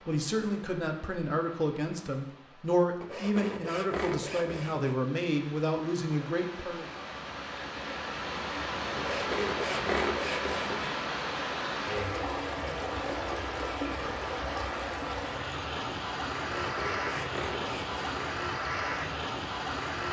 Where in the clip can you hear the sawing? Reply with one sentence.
You can hear the sawing from 3.0 to 5.0 s, from 8.9 to 10.9 s and from 16.6 to 18.1 s.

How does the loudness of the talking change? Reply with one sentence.
The loudness of the talking stays about the same.